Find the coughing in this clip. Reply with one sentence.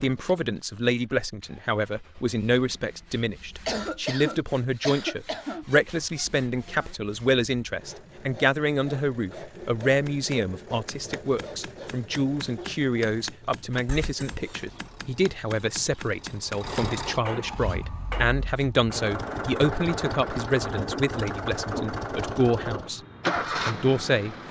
The coughing can be heard from 3.6 to 5.7 s and from 13.8 to 14.6 s.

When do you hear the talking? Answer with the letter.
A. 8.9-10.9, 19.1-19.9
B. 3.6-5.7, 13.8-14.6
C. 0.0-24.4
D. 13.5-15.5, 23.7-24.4
C.